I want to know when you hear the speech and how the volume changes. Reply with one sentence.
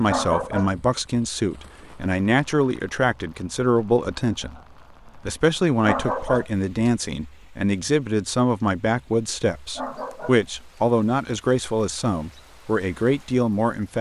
The speech can be heard from 0.0 to 13.9 s, at a steady volume.